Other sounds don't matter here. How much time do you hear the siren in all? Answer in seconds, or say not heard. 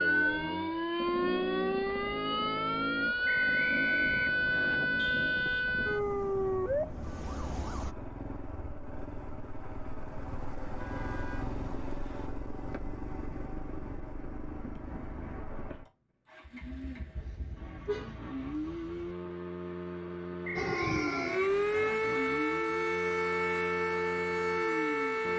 13 s.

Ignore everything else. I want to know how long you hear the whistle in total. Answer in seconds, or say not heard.
3 s.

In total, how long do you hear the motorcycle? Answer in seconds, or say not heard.
25 s.